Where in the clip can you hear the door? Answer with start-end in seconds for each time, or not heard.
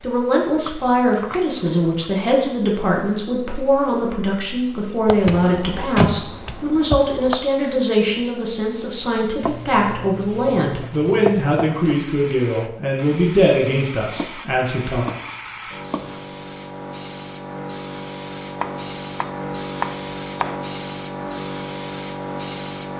5.2-6.2.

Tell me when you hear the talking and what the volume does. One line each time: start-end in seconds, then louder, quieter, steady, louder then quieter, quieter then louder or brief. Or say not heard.
0.0-15.1 steady.